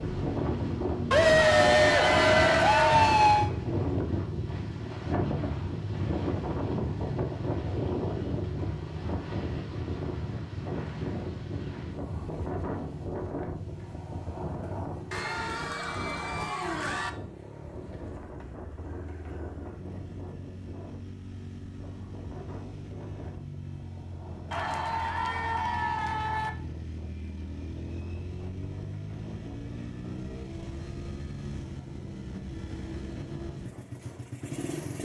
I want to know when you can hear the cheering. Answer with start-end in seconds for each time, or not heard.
1.1-3.5, 15.1-17.1, 24.5-26.5.